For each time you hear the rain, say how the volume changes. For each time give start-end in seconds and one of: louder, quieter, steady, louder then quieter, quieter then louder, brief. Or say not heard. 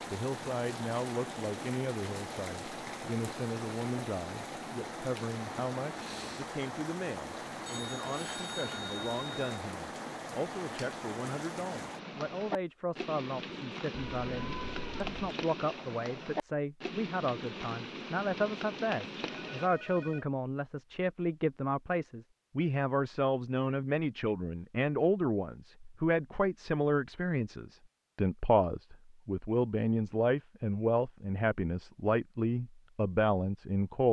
0.0-19.7 steady.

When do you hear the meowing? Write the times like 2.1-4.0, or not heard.
13.9-15.2.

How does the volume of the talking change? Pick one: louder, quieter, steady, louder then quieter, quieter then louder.
louder.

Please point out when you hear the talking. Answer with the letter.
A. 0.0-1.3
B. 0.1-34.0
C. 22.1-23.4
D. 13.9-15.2
B.